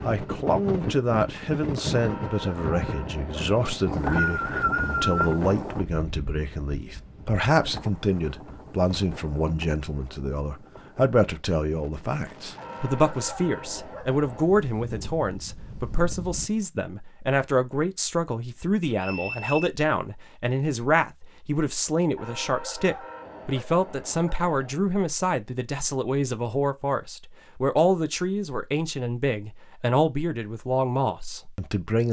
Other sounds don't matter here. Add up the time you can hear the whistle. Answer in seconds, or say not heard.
3 s.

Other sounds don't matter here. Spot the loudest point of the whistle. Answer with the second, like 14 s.
5 s.